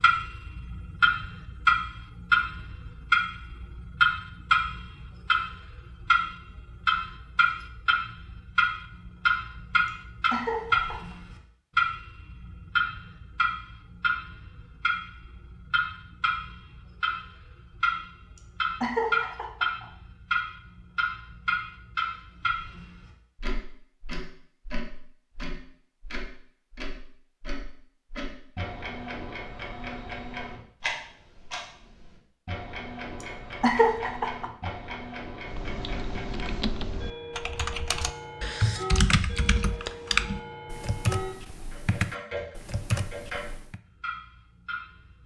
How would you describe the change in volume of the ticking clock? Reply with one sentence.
The loudness of the ticking clock goes down.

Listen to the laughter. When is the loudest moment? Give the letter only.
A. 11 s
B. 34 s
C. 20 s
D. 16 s
B.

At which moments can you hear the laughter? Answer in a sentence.
You can hear the laughter from 10.3 to 11.2 s, from 18.8 to 19.9 s and from 33.6 to 35.0 s.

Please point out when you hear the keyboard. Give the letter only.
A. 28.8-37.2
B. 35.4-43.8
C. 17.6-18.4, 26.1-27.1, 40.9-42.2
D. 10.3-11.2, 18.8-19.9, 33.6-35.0
B.